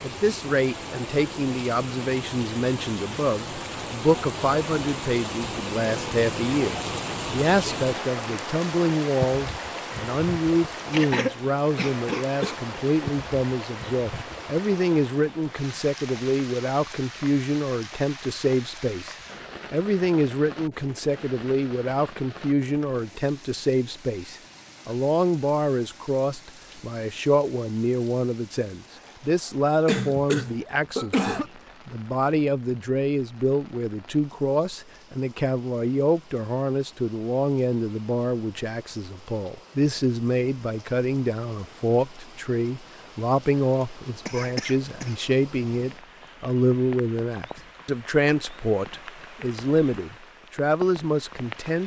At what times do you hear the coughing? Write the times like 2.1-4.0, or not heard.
10.9-12.6, 29.9-31.5, 44.2-45.1.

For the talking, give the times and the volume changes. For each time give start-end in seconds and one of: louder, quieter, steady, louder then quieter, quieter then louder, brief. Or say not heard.
0.0-51.8 steady.